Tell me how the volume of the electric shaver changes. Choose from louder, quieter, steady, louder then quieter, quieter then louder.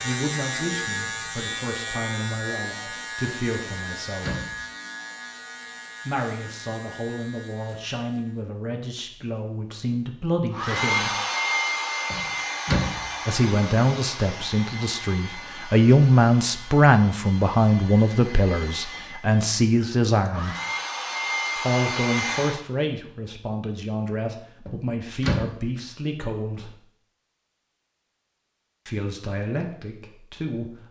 quieter.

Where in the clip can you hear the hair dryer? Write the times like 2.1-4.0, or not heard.
10.5-22.6.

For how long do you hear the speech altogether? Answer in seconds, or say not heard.
24 s.